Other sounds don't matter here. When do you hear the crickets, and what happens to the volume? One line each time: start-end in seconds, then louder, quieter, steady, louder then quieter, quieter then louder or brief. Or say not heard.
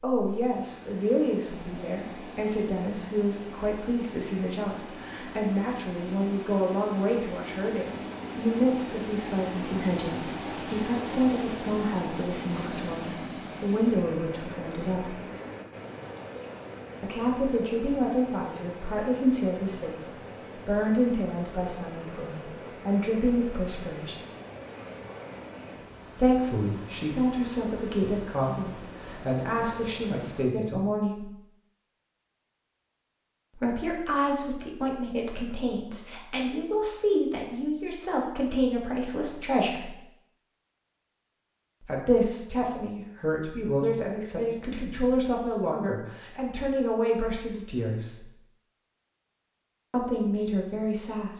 not heard.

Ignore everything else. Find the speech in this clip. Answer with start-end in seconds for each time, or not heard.
0.0-15.2, 17.0-24.1, 26.1-31.3, 33.5-39.9, 41.8-48.2, 49.9-51.3.